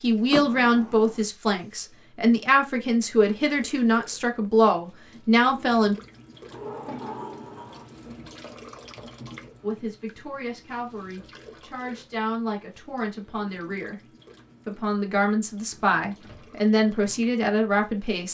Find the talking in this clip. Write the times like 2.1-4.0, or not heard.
0.0-6.0, 9.6-14.0, 14.7-18.2.